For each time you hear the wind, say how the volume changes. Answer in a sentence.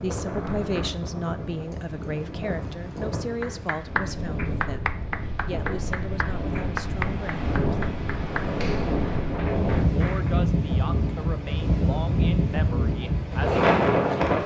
The wind can be heard from 0.0 to 14.4 s, getting louder.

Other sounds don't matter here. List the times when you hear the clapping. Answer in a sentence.
The clapping can be heard from 3.4 to 10.4 s.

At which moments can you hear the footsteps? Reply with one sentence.
You can't hear the footsteps here.